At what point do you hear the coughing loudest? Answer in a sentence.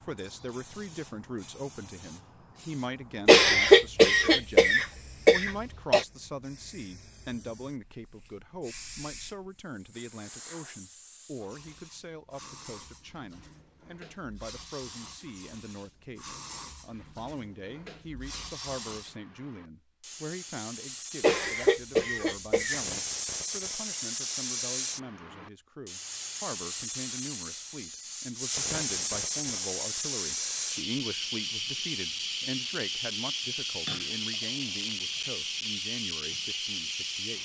The loudest moment of the coughing is at 4 seconds.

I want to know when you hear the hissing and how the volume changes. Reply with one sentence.
The hissing can be heard from 0.0 to 37.3 s, getting louder.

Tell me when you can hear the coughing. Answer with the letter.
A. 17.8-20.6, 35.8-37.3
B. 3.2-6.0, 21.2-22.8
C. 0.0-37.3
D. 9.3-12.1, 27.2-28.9
B.